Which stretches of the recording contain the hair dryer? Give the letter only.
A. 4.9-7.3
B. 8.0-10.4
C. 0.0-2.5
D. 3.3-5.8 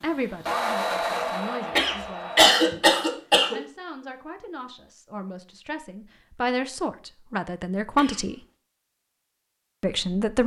C.